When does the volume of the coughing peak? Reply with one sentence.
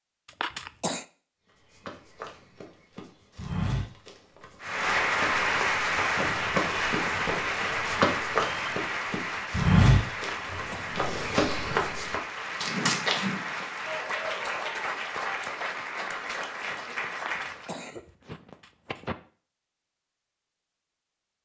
The volume of the coughing peaks at 1 second.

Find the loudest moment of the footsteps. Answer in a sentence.
The loudest moment of the footsteps is at 10 seconds.